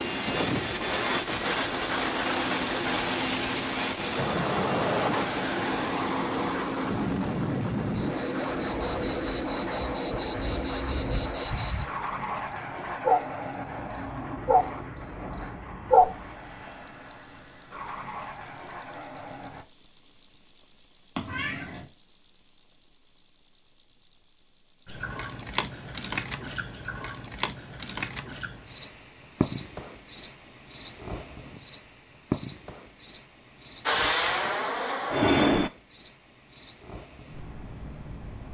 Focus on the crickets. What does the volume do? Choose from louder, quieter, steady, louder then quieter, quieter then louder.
louder then quieter.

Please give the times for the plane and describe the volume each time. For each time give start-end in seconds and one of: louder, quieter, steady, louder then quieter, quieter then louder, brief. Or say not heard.
0.0-19.6 quieter
33.9-35.7 brief.